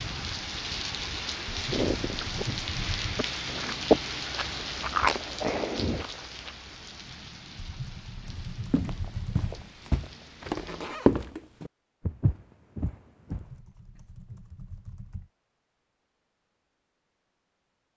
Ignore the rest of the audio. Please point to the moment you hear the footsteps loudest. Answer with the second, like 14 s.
11 s.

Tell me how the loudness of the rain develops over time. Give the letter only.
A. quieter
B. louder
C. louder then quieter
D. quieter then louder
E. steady
A.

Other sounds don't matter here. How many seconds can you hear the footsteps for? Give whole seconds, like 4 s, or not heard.
5 s.